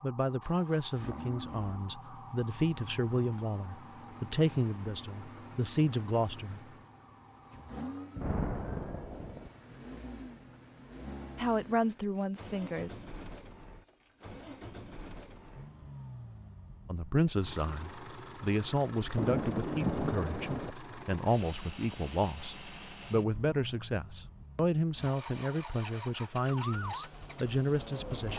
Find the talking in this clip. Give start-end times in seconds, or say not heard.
0.0-6.6, 11.3-13.1, 16.9-28.3.